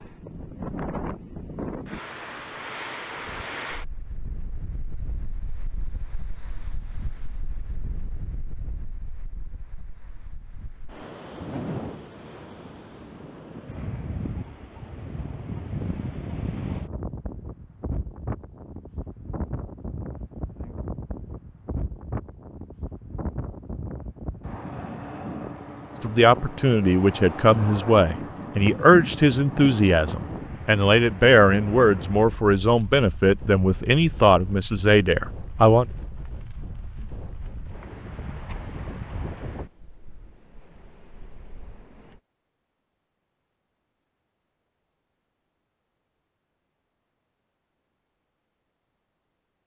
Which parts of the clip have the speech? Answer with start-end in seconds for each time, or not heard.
26.0-35.9.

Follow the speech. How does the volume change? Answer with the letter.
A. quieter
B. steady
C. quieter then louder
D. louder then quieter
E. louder
B.